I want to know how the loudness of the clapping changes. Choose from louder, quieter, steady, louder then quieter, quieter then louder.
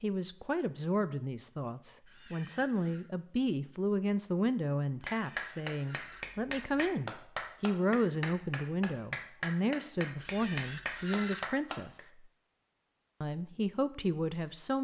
steady.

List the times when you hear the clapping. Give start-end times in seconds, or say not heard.
5.0-12.0.